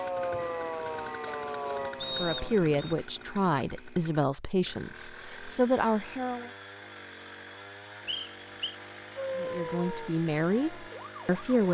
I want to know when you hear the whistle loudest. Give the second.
2 s.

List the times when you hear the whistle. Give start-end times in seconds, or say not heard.
2.0-3.0, 8.1-8.8.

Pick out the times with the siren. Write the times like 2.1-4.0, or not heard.
0.0-2.5, 9.2-11.6.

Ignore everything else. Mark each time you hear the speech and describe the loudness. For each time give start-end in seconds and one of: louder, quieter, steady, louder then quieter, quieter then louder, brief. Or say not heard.
2.1-6.5 quieter then louder
9.3-11.6 brief.